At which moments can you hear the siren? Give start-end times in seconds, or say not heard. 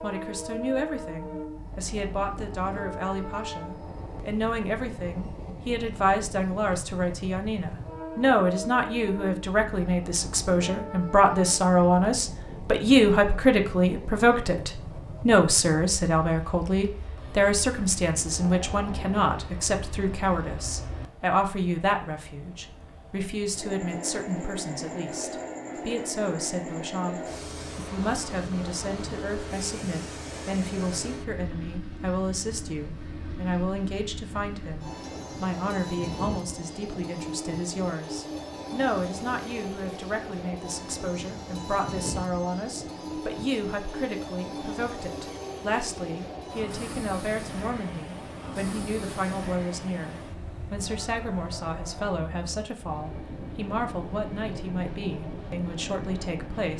not heard.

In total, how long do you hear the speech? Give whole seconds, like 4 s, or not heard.
57 s.